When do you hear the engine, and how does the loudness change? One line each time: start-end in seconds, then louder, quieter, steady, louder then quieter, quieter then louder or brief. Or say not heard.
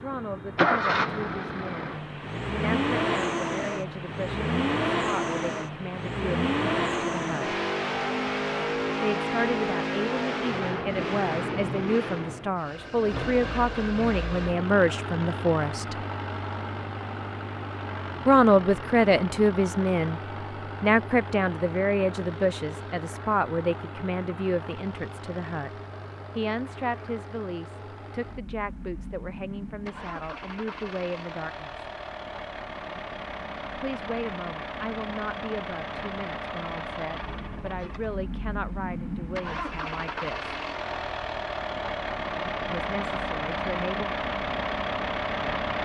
0.0-45.7 quieter then louder.